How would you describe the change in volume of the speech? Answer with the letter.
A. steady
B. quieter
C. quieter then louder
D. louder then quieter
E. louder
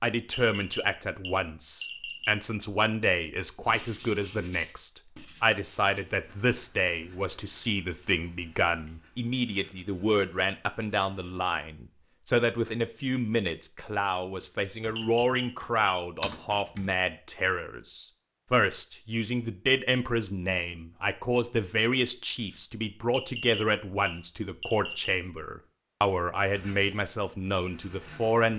A.